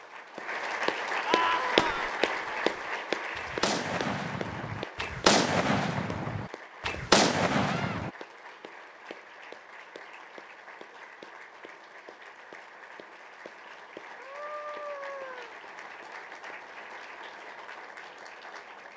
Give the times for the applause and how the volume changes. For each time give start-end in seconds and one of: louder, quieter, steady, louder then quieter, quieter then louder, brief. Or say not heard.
0.0-18.9 quieter.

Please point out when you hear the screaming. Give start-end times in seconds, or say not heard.
1.2-2.1, 7.6-8.1, 14.2-15.6.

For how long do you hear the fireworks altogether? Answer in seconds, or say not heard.
6 s.